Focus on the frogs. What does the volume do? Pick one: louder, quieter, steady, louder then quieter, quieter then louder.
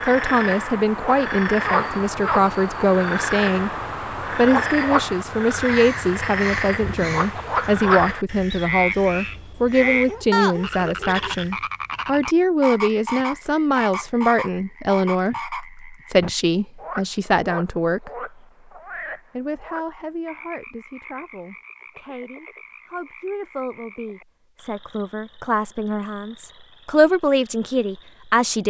quieter.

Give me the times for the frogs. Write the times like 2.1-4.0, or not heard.
0.0-28.4.